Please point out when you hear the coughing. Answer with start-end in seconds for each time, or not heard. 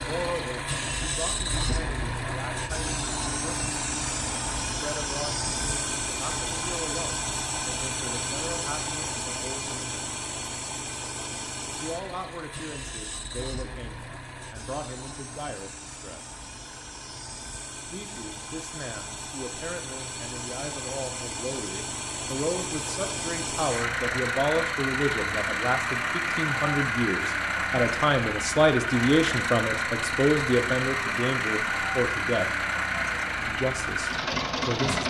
not heard.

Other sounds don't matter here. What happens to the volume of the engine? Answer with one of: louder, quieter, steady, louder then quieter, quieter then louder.
quieter then louder.